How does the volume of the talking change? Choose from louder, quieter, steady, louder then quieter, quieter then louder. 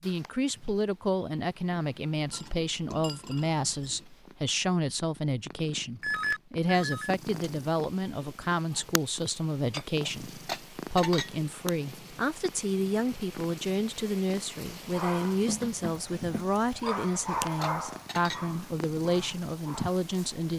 steady.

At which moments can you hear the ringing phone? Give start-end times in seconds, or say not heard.
6.0-7.5.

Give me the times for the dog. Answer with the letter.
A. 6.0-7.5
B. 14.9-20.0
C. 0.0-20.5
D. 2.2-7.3
B.